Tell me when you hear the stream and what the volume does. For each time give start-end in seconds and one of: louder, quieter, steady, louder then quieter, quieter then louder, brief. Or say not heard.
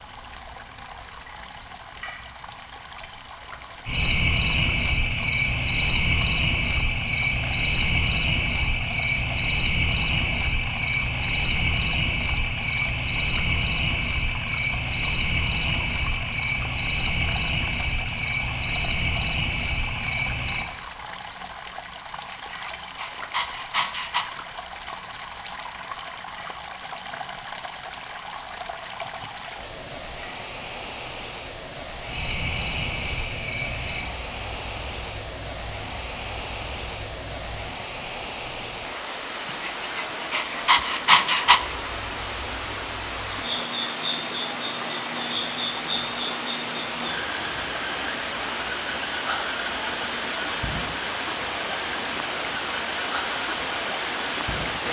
0.0-54.8 louder.